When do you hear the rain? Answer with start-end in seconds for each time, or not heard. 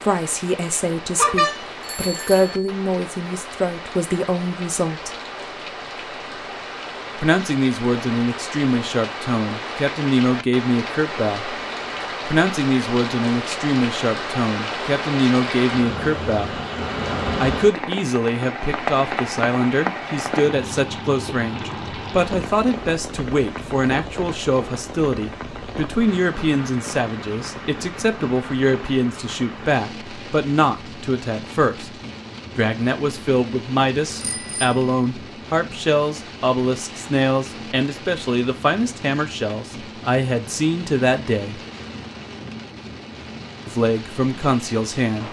0.0-45.2.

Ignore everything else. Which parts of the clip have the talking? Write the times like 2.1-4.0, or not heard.
0.0-5.2, 7.2-11.5, 12.2-16.6, 17.4-41.6, 43.6-45.2.